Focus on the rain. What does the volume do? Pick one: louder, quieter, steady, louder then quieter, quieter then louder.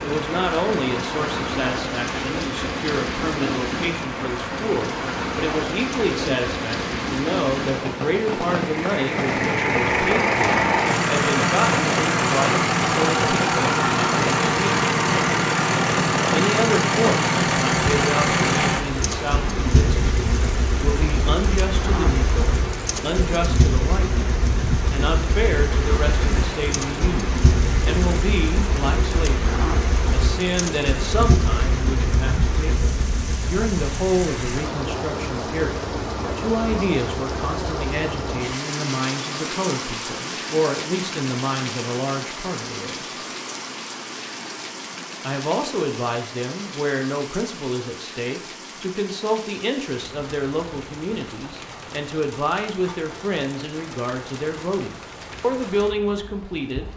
quieter.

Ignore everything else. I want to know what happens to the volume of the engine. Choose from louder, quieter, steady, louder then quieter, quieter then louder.
quieter.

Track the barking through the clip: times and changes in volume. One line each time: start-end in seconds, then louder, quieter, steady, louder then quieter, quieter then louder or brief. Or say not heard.
not heard.